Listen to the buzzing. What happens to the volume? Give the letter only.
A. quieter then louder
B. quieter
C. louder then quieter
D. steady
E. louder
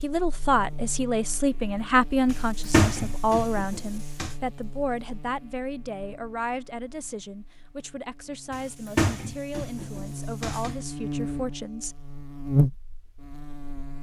A.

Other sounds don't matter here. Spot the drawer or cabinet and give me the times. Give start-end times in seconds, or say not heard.
2.2-4.3, 8.5-10.8.